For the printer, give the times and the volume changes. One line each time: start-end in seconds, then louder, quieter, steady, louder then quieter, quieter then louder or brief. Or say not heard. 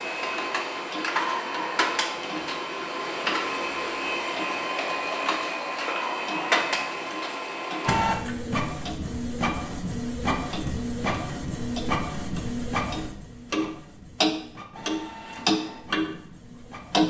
0.0-17.0 quieter.